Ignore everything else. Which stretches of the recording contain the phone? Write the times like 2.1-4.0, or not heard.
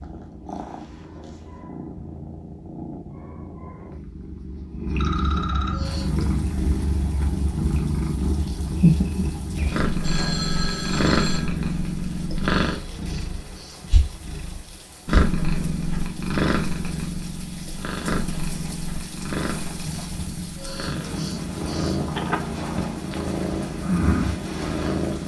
5.0-5.9, 9.6-11.5, 22.1-23.3.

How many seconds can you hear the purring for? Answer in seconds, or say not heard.
25 s.